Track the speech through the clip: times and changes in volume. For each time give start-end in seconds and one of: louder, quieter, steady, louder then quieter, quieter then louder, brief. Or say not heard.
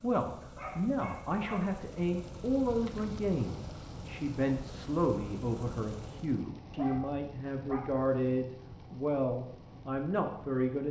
0.0-10.8 steady.